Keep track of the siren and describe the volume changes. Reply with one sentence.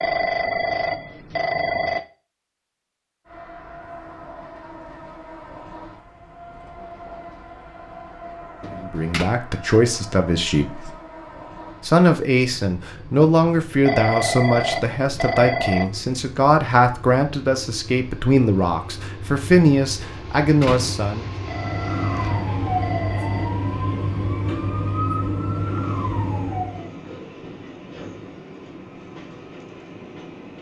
The loudness of the siren stays about the same.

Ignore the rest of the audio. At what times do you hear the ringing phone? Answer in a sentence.
You can hear the ringing phone from 0.0 to 2.0 s, from 13.8 to 15.8 s and from 21.4 to 23.5 s.